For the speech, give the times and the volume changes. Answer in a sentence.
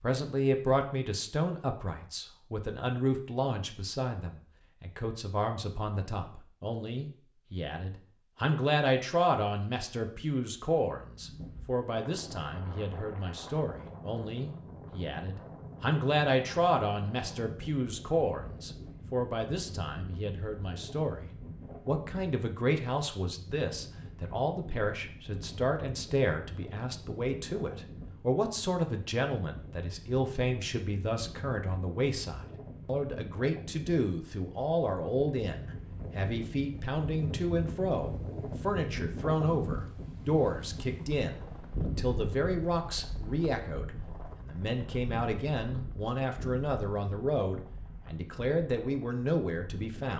The speech can be heard from 0.0 to 50.1 s, at a steady volume.